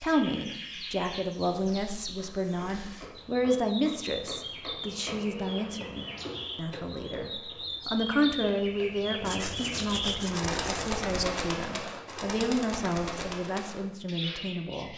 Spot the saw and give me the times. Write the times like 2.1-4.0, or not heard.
9.2-11.2.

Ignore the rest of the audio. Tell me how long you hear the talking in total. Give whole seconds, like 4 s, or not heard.
15 s.